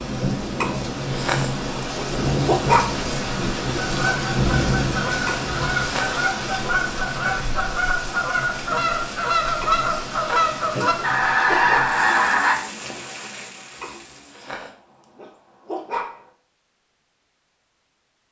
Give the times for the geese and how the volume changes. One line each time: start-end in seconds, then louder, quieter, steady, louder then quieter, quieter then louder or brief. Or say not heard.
3.9-12.6 louder.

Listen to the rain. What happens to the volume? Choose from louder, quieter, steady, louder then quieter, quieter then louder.
quieter.